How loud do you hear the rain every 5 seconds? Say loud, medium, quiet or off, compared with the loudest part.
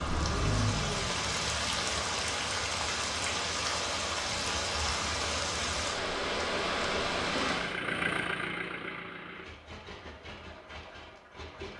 loud, loud, off.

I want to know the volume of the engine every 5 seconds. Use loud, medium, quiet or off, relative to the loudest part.
loud, loud, medium.